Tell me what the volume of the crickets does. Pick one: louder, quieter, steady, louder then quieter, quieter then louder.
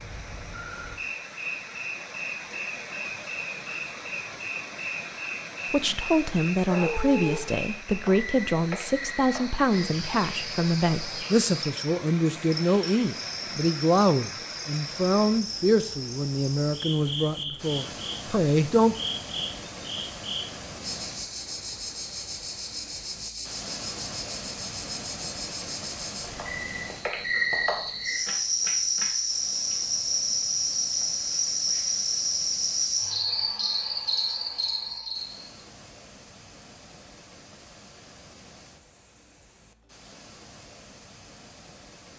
louder.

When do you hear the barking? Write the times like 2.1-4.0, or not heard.
6.7-7.5.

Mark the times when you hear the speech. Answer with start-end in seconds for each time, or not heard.
5.7-18.9.